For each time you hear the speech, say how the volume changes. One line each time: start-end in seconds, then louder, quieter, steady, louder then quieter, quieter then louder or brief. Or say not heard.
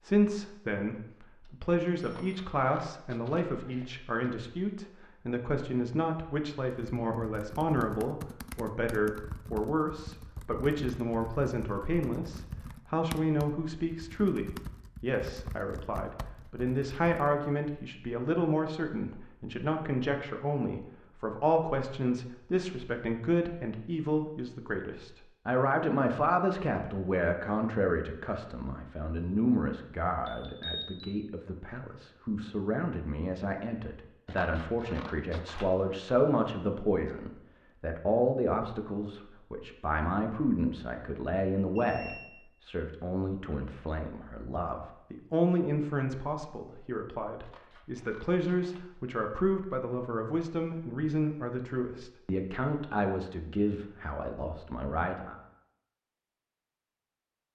0.0-55.4 steady.